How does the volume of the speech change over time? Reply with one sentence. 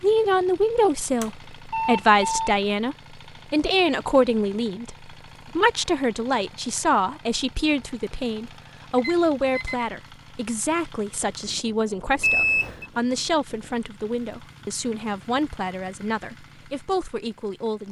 The volume of the speech goes down.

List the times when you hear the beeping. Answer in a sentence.
You can hear the beeping from 1.2 to 2.5 s, from 8.9 to 9.9 s and from 12.2 to 12.8 s.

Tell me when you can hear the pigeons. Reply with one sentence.
The pigeons can't be heard in this clip.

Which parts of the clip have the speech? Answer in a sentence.
You can hear the speech from 0.0 to 17.8 s.